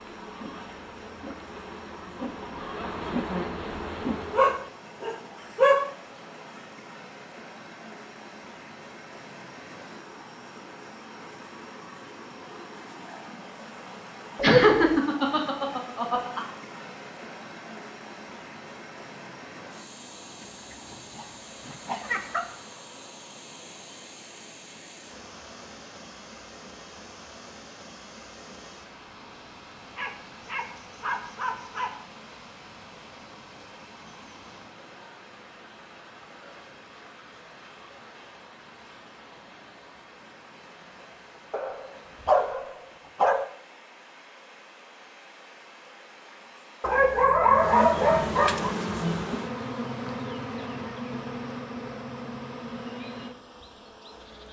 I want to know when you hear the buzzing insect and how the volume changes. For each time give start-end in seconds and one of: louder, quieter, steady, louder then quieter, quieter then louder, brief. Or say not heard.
0.0-4.7 louder
47.5-54.4 quieter.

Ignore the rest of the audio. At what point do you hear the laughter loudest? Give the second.
15 s.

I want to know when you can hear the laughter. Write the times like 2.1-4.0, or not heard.
14.4-16.4.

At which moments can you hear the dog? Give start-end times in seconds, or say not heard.
4.3-5.9, 14.3-15.0, 20.4-22.4, 29.9-31.9, 41.5-43.5, 46.8-48.8.